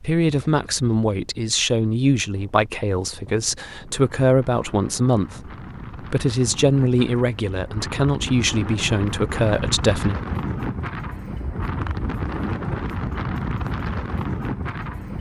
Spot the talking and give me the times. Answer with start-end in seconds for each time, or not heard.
0.0-10.2.